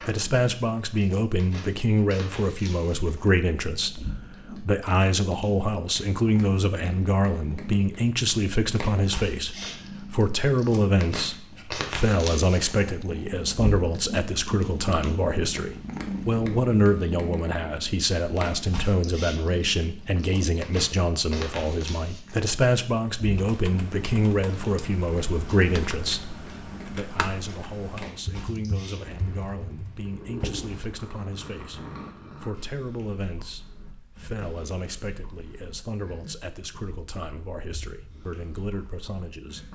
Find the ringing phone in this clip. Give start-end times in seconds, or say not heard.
not heard.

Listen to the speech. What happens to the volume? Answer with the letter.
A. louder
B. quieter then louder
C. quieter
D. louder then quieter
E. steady
C.